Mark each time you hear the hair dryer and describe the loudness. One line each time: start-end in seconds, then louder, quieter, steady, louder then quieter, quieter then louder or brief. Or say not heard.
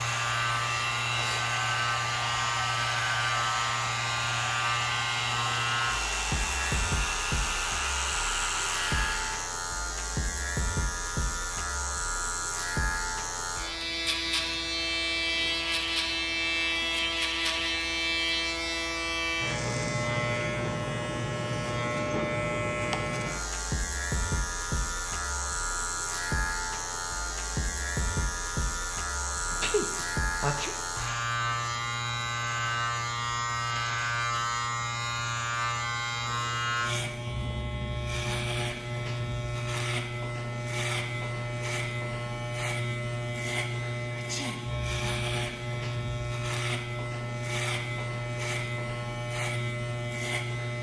0.0-9.6 steady.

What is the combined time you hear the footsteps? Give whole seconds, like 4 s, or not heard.
not heard.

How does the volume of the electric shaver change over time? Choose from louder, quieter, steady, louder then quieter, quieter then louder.
steady.